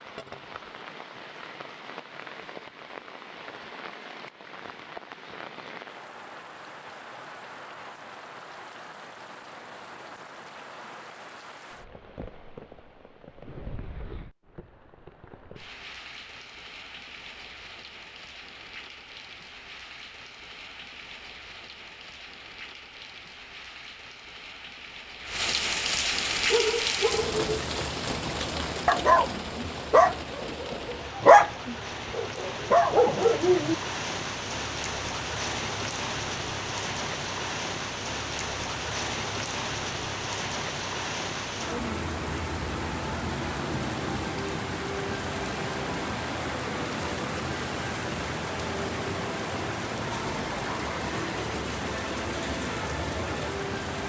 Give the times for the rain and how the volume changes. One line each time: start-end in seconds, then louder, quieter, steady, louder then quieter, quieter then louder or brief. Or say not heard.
0.0-54.0 louder.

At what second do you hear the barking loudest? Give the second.
31 s.